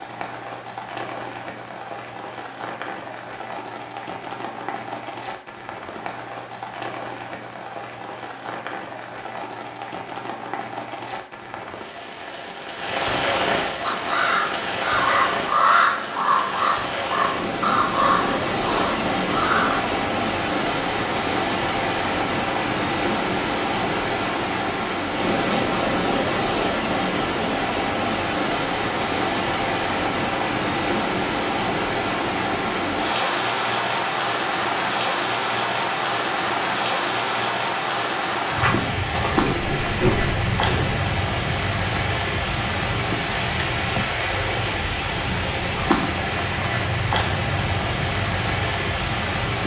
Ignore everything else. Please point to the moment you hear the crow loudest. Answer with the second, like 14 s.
16 s.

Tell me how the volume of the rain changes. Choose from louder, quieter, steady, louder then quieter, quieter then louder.
louder.